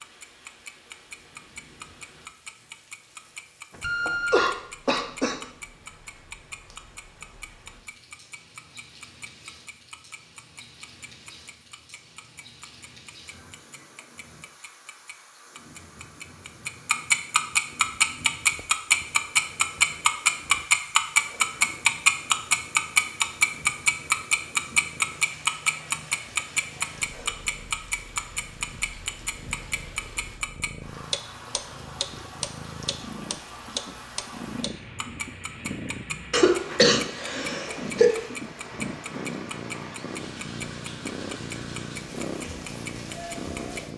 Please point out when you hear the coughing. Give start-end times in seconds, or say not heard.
3.8-5.4, 36.3-38.2.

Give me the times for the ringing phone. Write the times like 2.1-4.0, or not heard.
3.8-4.5.